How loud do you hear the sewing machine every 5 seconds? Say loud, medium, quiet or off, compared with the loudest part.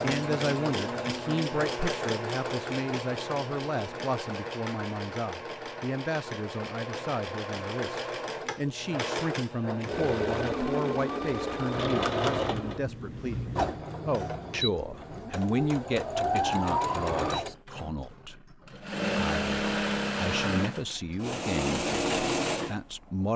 loud, medium, loud, loud, loud.